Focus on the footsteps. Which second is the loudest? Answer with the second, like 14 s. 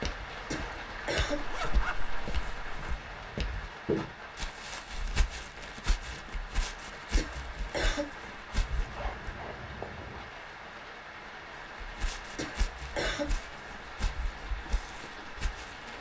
4 s.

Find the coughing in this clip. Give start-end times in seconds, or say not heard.
0.5-1.4, 7.2-8.1, 12.3-13.2.